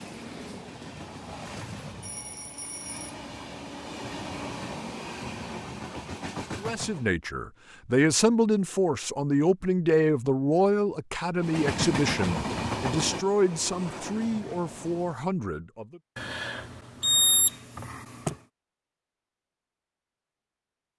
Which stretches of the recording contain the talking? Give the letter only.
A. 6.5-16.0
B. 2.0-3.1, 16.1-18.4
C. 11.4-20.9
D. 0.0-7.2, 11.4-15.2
A.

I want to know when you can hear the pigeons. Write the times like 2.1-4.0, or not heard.
not heard.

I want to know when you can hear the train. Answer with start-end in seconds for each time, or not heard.
0.0-7.2, 11.4-15.2.